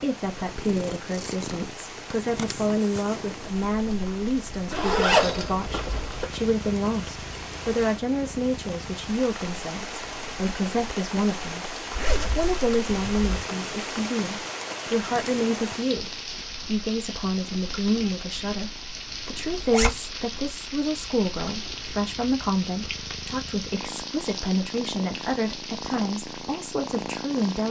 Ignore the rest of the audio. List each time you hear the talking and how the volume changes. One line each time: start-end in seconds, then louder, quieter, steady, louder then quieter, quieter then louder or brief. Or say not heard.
0.0-27.6 steady.